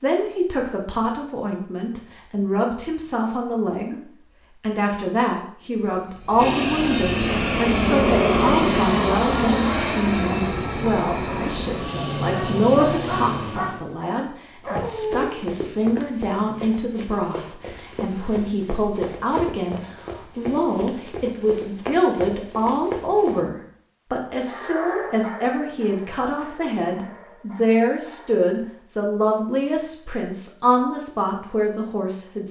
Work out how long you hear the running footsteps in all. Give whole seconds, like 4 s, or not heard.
9 s.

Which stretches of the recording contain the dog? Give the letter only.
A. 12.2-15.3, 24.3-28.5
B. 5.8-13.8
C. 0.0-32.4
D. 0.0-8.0
A.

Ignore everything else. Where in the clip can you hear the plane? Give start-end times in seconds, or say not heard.
5.8-13.8.